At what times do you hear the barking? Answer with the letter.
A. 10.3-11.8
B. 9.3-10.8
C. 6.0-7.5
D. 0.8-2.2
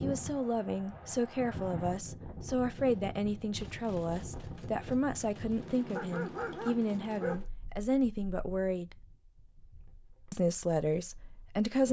C.